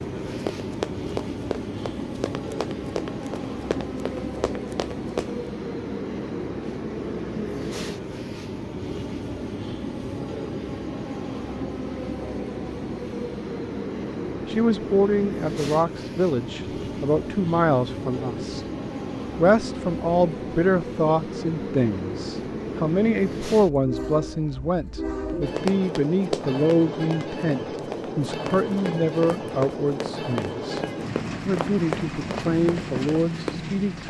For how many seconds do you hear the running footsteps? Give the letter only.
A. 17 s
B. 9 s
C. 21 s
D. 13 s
D.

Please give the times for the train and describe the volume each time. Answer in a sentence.
The train can be heard from 0.0 to 34.0 s, at a steady volume.